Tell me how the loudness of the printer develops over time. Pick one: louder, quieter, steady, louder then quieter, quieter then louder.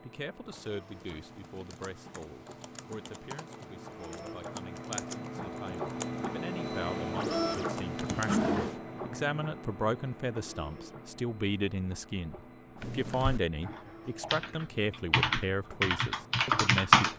louder then quieter.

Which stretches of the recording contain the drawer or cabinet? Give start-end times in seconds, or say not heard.
8.1-8.8.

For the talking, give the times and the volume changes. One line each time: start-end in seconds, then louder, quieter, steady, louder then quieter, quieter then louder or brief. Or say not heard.
0.0-17.1 louder.